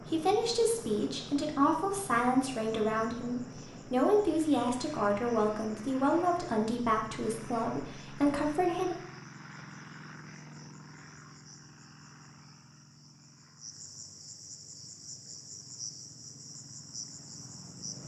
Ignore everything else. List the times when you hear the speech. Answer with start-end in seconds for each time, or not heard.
0.0-8.9.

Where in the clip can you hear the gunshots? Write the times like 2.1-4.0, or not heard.
not heard.